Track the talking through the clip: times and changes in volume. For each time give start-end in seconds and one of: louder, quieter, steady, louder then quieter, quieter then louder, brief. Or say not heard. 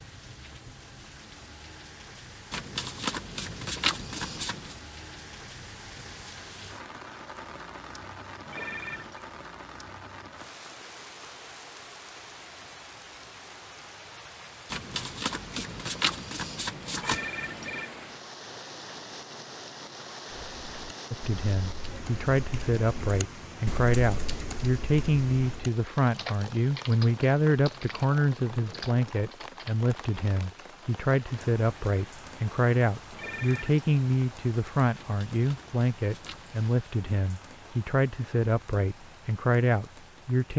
21.1-40.5 steady.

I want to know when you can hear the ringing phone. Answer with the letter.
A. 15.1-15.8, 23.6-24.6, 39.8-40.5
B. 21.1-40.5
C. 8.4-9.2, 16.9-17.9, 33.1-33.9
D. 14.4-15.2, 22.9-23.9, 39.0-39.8
C.